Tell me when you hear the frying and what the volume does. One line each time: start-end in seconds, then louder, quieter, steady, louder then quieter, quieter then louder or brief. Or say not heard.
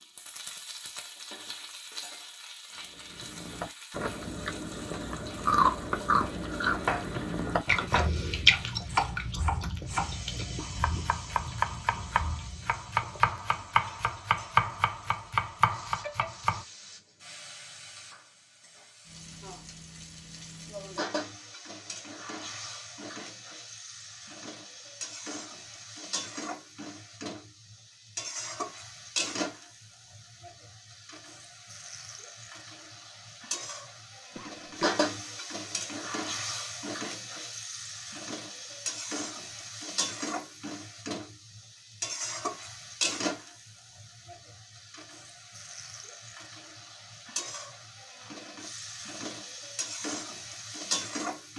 0.0-51.5 louder.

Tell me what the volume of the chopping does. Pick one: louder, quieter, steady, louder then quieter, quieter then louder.
louder.